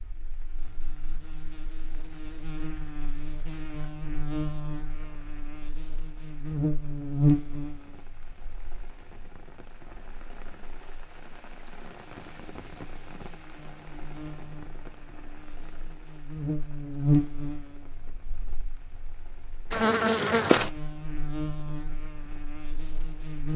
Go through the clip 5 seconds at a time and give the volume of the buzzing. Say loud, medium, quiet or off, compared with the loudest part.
medium, loud, quiet, loud, loud.